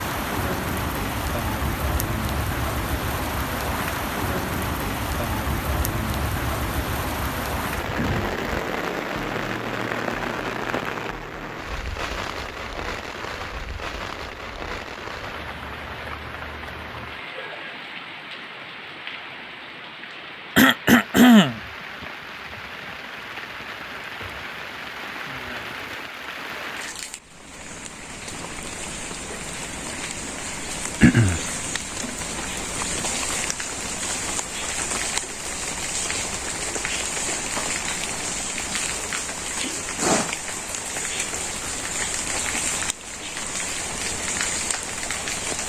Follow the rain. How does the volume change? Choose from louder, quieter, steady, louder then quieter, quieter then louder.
quieter then louder.